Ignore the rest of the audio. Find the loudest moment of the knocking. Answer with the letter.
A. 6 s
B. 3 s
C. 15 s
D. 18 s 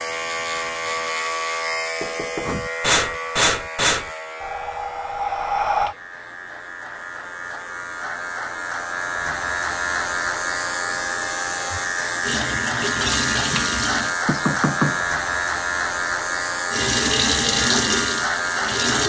C.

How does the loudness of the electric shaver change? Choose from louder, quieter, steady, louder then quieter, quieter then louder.
quieter then louder.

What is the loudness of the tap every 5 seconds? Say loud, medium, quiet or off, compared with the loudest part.
off, off, loud, loud.